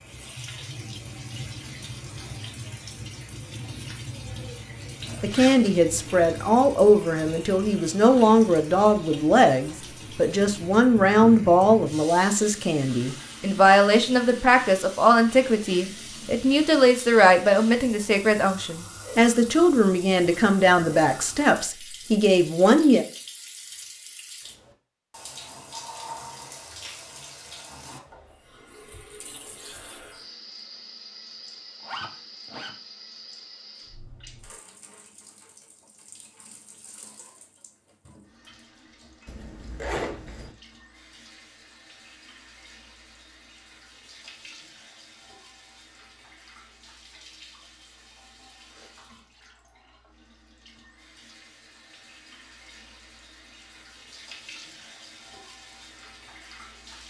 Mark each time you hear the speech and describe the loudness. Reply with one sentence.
The speech can be heard from 5.2 to 23.1 s, at a steady volume.